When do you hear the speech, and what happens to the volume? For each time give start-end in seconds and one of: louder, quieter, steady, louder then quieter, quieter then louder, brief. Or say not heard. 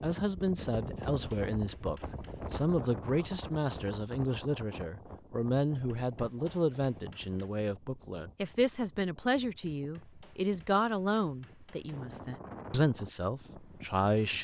0.0-14.3 steady.